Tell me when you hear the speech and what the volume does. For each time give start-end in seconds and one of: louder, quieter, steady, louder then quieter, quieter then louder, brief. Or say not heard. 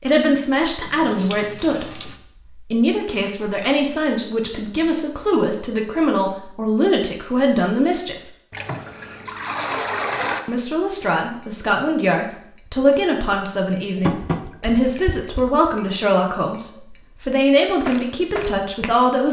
0.0-8.3 steady
10.4-19.2 steady.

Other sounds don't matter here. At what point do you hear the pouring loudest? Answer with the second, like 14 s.
10 s.